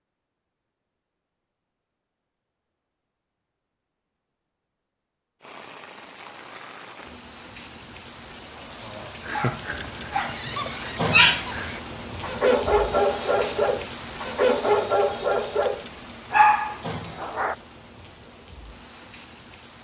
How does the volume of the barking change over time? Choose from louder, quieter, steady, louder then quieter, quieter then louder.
louder.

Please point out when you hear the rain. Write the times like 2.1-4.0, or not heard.
5.4-19.7.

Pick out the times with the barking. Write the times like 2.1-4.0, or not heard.
9.0-17.6.